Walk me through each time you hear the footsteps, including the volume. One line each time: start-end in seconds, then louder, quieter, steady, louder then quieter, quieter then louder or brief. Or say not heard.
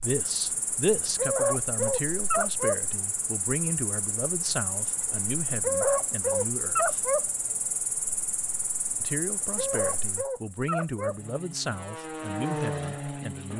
not heard.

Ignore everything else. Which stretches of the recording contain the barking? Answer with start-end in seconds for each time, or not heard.
1.1-2.8, 5.6-7.2, 9.6-11.2.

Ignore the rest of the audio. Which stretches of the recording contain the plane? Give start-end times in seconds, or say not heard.
11.1-13.5.